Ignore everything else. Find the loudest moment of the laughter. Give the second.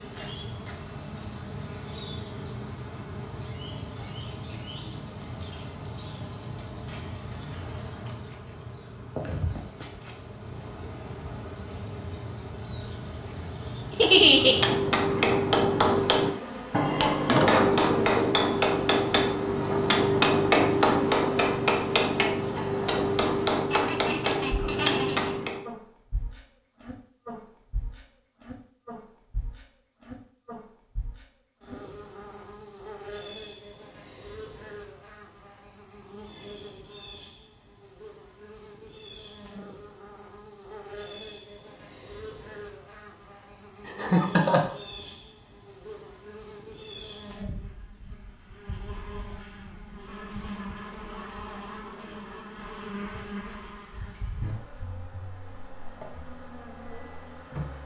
14 s.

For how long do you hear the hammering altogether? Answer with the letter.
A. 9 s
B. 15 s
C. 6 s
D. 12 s
D.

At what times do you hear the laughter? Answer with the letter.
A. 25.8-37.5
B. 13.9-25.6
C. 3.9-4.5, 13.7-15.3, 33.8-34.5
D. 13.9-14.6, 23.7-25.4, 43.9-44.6
D.